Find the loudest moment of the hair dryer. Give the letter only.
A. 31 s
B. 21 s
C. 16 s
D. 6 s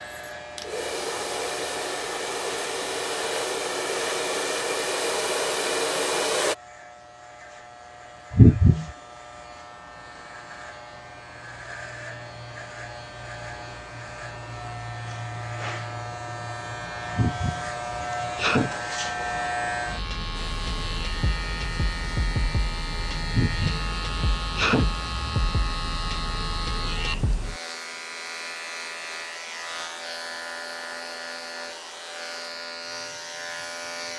D.